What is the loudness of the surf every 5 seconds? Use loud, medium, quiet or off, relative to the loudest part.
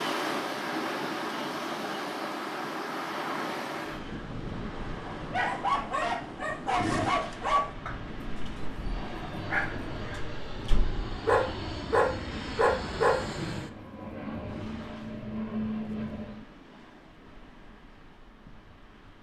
loud, medium, quiet, quiet.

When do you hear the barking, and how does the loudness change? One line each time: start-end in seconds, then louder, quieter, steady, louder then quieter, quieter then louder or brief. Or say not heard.
5.3-13.2 quieter then louder.